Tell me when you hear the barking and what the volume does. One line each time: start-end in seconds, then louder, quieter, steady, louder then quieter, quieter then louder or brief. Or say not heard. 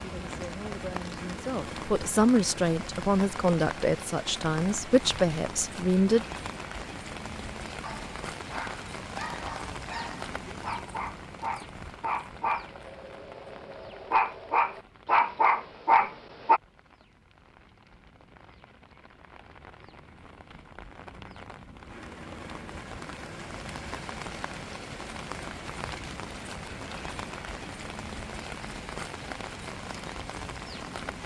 7.8-16.6 louder.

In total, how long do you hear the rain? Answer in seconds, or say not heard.
31 s.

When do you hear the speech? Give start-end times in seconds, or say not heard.
0.0-6.2.